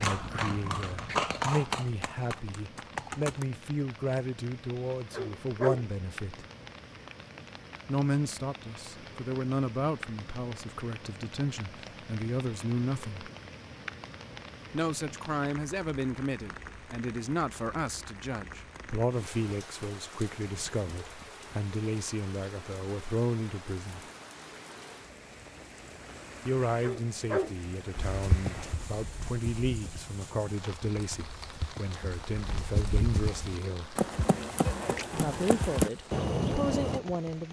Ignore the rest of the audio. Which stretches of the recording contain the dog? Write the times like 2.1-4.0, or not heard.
5.1-5.8, 26.8-27.6.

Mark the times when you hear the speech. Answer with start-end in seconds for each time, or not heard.
0.0-6.5, 7.8-13.3, 14.7-24.1, 26.4-34.0, 35.1-37.4.